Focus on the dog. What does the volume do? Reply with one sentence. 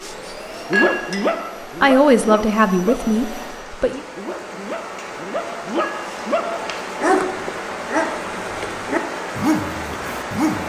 The loudness of the dog goes down, then up.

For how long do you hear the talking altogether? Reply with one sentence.
You can hear the talking for 2 seconds altogether.